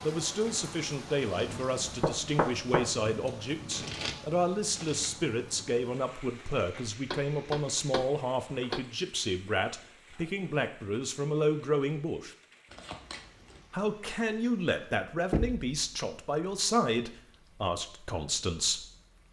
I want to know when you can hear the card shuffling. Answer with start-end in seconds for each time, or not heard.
3.7-5.1, 12.7-13.7.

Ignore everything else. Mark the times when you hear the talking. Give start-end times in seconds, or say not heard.
0.0-12.3, 13.7-18.9.